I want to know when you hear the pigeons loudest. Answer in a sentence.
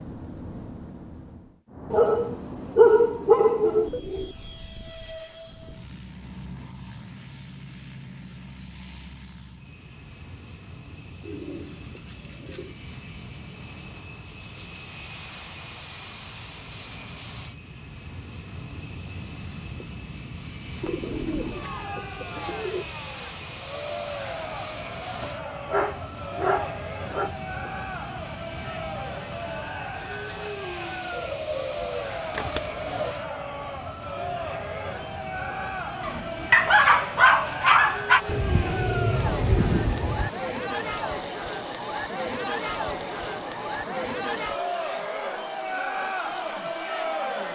The volume of the pigeons peaks at 40 seconds.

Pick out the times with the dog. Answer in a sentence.
You can hear the dog from 1.9 to 3.9 s, from 25.2 to 27.3 s and from 36.0 to 38.2 s.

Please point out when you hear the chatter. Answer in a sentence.
You can hear the chatter from 21.5 to 47.5 s.